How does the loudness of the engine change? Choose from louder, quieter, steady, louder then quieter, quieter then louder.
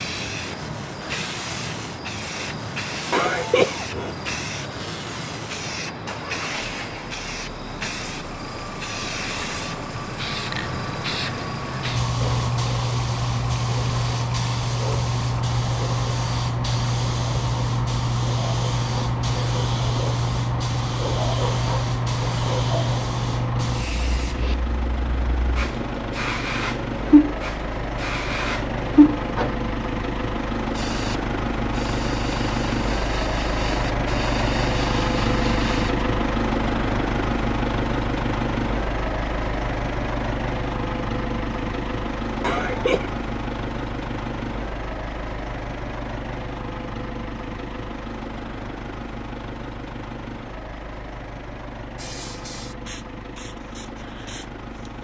louder then quieter.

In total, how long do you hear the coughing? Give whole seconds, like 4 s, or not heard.
2 s.